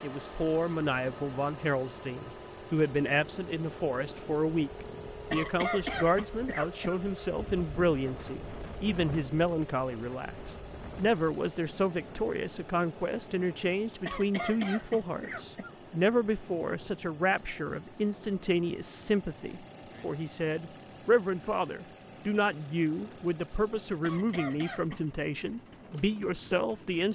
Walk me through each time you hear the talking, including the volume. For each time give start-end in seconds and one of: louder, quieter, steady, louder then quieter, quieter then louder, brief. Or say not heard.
0.0-27.1 steady.